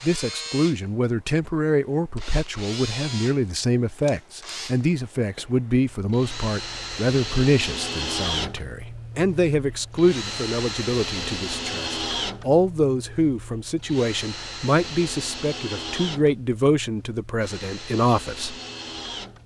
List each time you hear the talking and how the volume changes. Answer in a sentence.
You can hear the talking from 0.0 to 18.6 s, at a steady volume.